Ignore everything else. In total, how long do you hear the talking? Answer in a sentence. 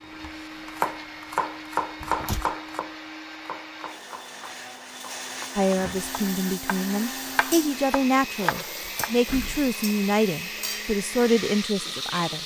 The talking can be heard for 7 seconds in total.